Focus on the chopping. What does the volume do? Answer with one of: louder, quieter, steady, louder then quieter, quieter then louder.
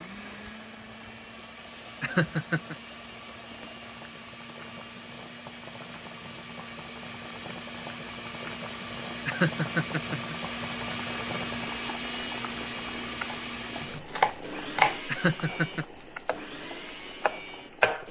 quieter then louder.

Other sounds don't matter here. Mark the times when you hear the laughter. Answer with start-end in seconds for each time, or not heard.
2.0-2.8, 9.2-10.3, 15.1-15.8.